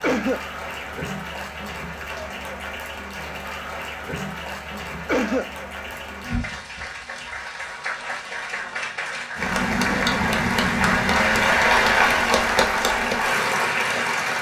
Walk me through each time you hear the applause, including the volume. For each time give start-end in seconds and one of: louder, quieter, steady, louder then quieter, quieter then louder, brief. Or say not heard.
0.0-14.3 louder.